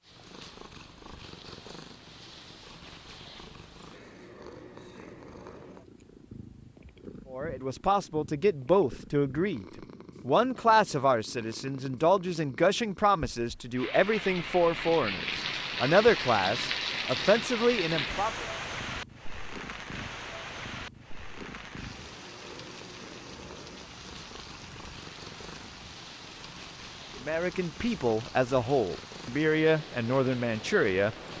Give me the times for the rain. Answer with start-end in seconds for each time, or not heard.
13.8-31.3.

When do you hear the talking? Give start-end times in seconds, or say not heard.
7.3-18.4, 27.1-31.1.